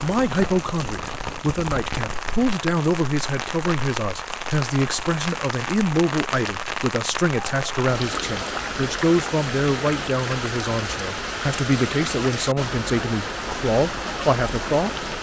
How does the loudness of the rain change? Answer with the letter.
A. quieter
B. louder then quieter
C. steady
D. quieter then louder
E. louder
C.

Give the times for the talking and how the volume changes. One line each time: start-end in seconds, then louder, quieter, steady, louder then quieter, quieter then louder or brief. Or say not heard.
0.0-14.9 steady.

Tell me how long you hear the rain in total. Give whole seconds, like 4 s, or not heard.
15 s.